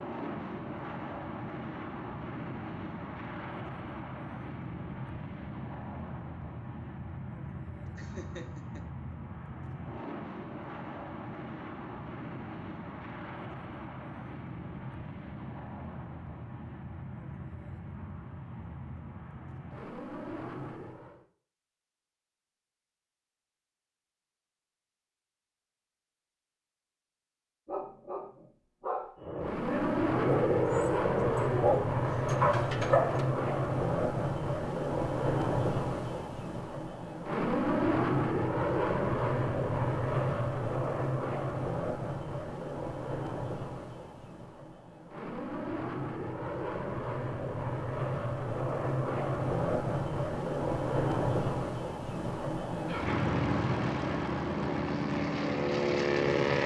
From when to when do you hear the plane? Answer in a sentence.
You can hear the plane from 0.0 to 21.2 s and from 29.1 to 56.6 s.